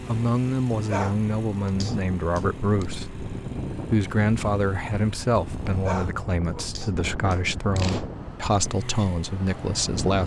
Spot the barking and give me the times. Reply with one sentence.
The barking can be heard from 0.9 to 2.9 s and from 5.8 to 8.1 s.